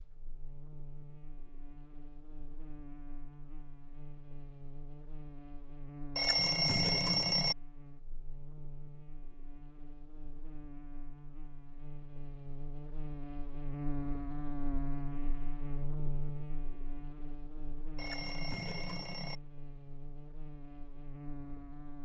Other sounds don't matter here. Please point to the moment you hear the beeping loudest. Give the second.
7 s.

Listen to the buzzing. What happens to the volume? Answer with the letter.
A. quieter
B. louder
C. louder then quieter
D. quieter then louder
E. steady
C.